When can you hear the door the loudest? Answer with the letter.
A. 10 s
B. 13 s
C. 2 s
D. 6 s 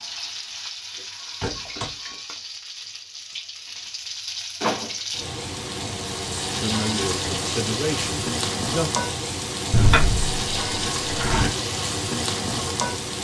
A.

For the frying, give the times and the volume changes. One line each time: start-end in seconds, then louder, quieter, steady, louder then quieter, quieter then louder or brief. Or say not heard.
0.0-13.1 louder.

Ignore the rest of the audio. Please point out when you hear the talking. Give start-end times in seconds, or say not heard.
6.5-8.9.